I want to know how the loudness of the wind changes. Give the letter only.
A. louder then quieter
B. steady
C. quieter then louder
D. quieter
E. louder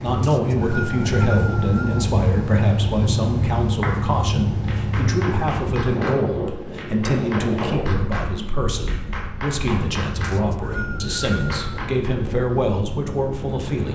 D.